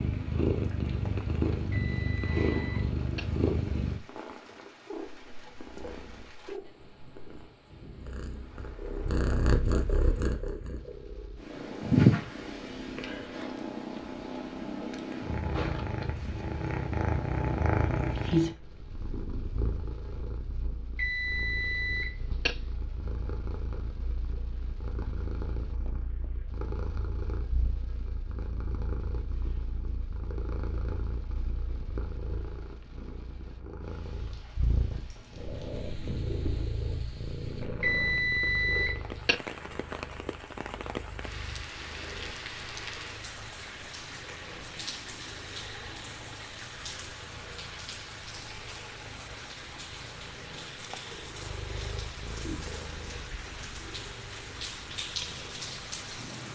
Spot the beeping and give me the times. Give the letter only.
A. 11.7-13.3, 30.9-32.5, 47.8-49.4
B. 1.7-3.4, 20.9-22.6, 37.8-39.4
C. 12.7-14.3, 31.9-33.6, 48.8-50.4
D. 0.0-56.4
B.